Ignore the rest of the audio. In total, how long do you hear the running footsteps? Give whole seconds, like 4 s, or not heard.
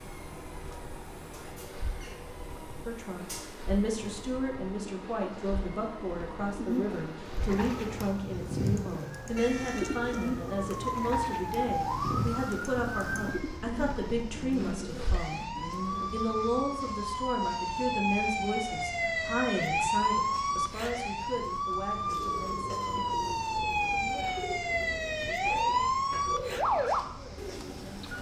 not heard.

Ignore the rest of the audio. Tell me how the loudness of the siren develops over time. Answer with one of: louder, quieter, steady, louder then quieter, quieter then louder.
louder.